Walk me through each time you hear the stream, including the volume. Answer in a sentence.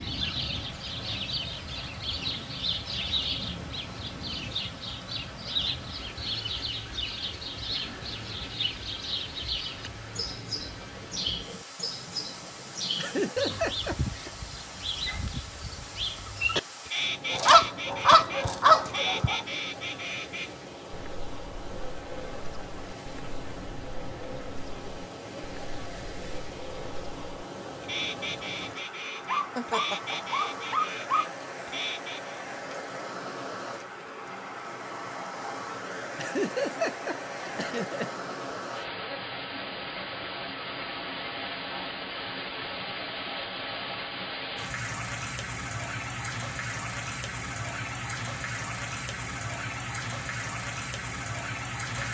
The stream can be heard from 0.0 to 52.0 s, getting louder.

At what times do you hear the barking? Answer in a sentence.
You can hear the barking from 17.3 to 19.4 s and from 29.2 to 31.2 s.